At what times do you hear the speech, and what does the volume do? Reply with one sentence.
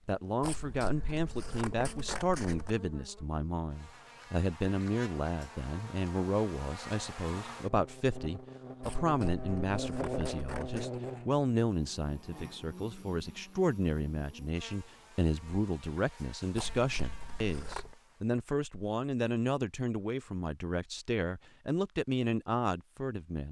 The speech can be heard from 0.1 to 23.4 s, at a steady volume.